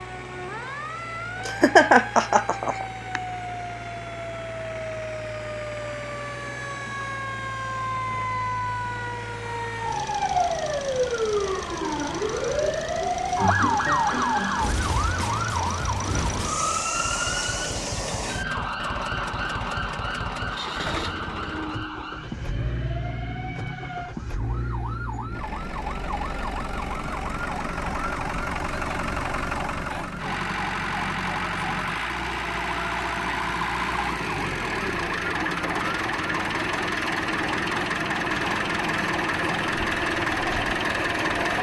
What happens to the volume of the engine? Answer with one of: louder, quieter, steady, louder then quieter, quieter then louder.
louder.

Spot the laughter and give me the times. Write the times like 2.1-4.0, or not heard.
1.4-3.2.